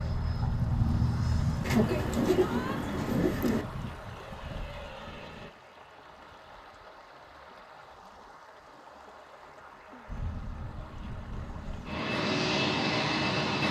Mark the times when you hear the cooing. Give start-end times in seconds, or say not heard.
1.6-3.6.